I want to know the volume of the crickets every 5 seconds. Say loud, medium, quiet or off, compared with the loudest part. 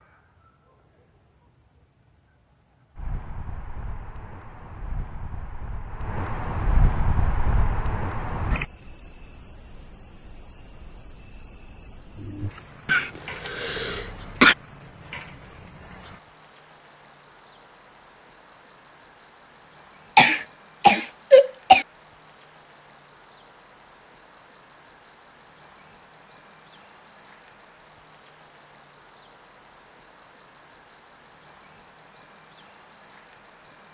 quiet, loud, loud, loud, loud, loud, loud.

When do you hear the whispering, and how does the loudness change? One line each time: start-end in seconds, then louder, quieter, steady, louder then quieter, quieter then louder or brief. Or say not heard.
not heard.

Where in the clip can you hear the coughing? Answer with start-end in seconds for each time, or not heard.
12.8-14.6, 20.1-21.9.